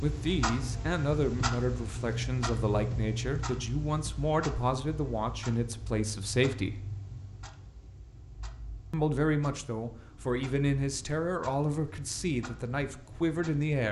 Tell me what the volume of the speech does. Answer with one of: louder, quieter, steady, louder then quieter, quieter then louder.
steady.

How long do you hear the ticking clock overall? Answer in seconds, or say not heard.
14 s.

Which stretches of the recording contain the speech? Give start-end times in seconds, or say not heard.
0.0-6.8, 8.9-13.8.